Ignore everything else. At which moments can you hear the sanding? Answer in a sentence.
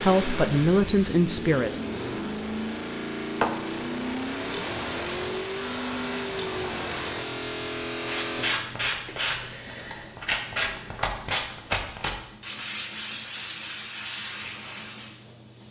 You can hear the sanding from 8.0 to 15.2 s.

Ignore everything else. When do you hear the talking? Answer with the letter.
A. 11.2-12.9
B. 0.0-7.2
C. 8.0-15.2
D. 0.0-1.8
D.